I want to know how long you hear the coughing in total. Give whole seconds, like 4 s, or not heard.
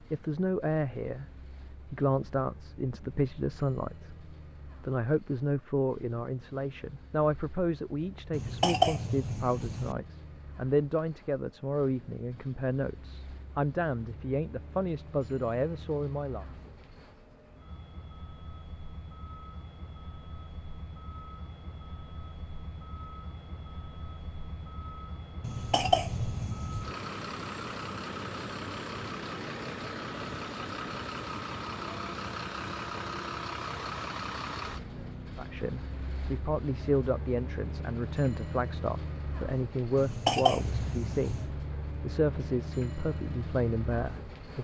5 s.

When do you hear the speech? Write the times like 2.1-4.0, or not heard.
0.1-16.4, 35.4-44.5.